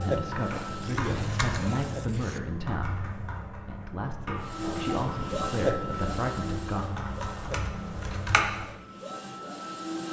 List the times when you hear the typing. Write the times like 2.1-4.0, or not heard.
0.1-8.7.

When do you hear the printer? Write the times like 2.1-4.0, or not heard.
0.0-2.0, 4.3-10.0.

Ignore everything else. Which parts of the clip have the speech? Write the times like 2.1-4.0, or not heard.
0.0-6.8.